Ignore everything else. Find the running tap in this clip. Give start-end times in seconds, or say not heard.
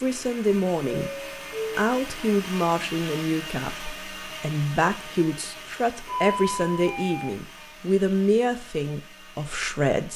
not heard.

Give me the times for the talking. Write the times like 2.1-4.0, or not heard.
0.0-1.1, 1.8-10.1.